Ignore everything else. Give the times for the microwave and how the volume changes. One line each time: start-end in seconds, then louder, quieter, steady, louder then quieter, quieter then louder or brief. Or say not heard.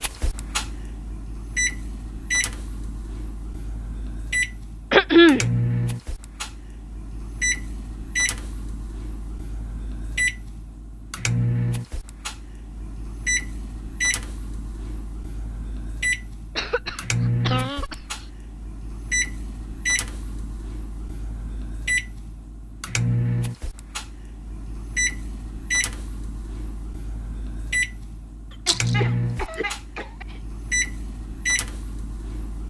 0.0-32.6 steady.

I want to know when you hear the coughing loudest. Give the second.
5 s.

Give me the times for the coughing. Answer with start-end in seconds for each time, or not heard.
4.9-5.5, 16.6-18.2, 28.5-30.4.